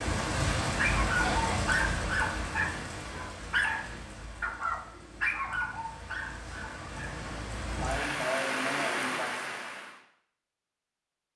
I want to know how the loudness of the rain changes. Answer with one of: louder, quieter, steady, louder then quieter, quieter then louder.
quieter then louder.